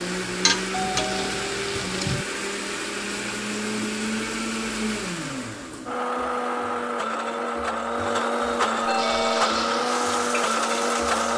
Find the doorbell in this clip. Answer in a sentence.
The doorbell can be heard from 0.7 to 2.2 s and from 8.8 to 9.5 s.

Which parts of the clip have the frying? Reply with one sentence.
The frying can be heard from 0.2 to 2.1 s and from 8.9 to 11.3 s.